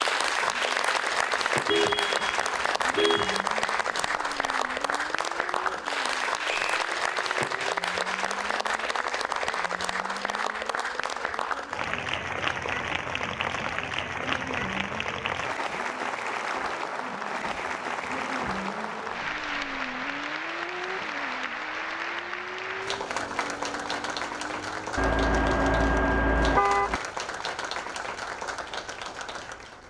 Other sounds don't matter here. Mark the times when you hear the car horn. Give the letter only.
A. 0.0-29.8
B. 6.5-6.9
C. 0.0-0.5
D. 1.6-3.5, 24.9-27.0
D.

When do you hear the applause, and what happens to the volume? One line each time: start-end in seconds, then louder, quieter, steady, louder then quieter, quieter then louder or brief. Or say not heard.
0.0-29.8 quieter.